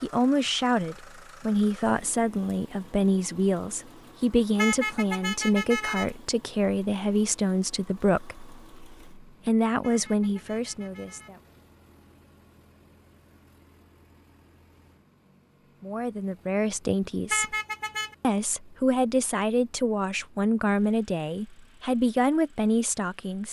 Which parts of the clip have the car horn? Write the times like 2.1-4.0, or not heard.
4.5-6.1, 9.8-11.3, 17.3-18.1.